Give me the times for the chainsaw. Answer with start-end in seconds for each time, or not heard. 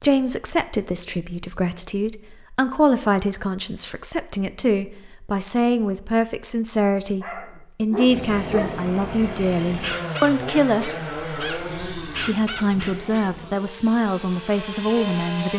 8.1-15.5.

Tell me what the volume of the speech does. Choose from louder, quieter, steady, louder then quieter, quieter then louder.
steady.